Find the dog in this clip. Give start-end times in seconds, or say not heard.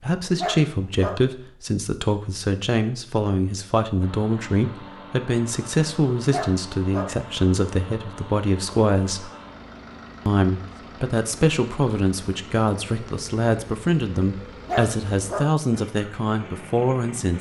0.3-1.2, 6.3-7.2, 14.7-15.5.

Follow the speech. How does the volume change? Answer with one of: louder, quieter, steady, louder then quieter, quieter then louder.
steady.